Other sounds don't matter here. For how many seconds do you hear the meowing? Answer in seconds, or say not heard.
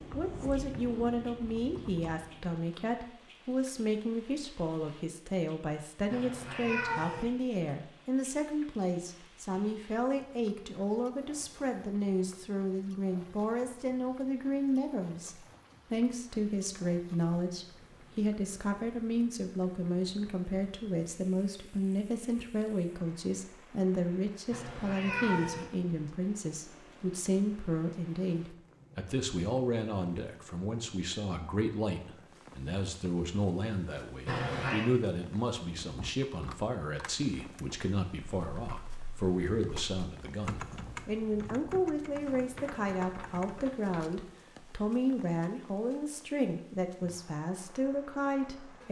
3 s.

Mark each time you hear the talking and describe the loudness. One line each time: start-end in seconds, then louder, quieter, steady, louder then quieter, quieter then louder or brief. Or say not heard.
0.1-48.8 steady.